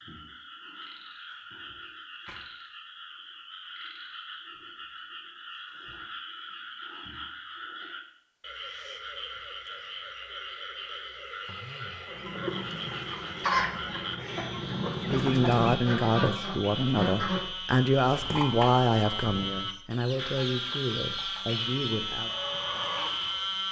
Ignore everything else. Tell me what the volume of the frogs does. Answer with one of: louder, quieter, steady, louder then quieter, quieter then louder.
louder.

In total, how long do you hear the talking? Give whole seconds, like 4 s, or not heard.
7 s.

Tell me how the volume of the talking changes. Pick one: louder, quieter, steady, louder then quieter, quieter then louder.
quieter.